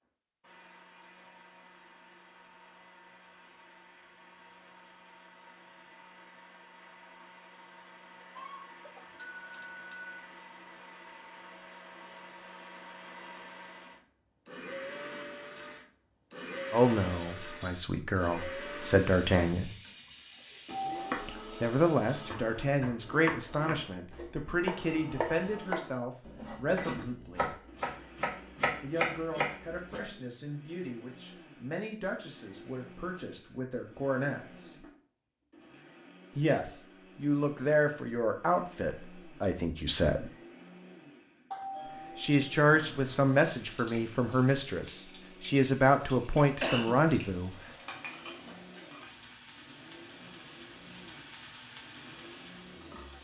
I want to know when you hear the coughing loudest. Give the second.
47 s.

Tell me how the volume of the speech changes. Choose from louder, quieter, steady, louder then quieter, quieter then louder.
quieter then louder.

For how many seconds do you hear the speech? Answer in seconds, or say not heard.
24 s.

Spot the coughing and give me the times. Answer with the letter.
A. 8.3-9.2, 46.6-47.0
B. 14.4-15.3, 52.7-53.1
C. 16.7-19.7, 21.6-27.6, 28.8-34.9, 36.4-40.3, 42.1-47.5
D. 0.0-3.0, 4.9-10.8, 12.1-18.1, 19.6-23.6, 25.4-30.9
A.